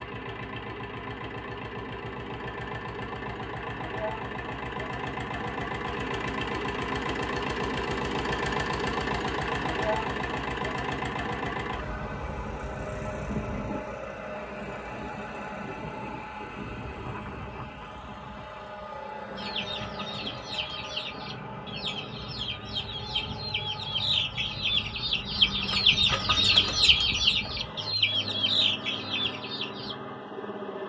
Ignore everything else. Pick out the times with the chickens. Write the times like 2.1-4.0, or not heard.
19.4-29.9.